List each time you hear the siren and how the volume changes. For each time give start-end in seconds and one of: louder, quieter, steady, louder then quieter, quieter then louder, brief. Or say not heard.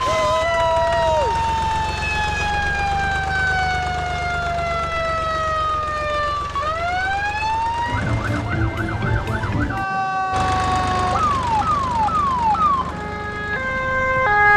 0.0-14.5 steady.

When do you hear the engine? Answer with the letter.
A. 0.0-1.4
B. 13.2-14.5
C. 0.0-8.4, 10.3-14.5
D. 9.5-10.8
C.